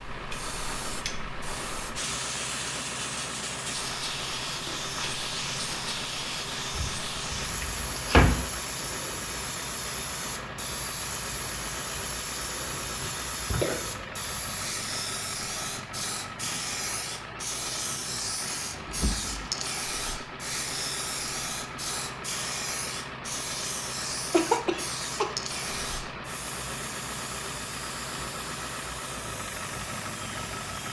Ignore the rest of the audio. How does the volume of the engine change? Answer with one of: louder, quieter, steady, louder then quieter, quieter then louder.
steady.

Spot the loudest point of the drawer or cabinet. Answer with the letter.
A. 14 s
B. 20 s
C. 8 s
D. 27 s
C.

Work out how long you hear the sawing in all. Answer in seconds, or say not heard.
not heard.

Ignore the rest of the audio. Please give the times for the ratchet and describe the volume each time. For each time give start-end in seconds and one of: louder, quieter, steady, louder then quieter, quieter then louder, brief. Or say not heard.
not heard.